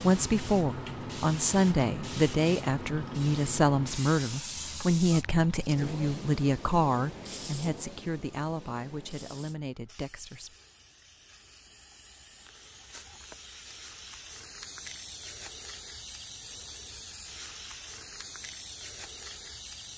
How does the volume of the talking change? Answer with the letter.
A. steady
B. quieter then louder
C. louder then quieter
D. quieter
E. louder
D.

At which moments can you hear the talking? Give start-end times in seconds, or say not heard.
0.0-10.6.